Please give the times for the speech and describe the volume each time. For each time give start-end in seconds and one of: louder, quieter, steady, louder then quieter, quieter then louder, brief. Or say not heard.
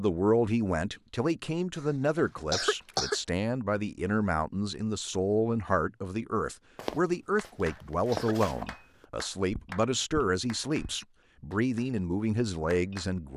0.0-13.3 steady.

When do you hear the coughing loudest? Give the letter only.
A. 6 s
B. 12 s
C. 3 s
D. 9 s
C.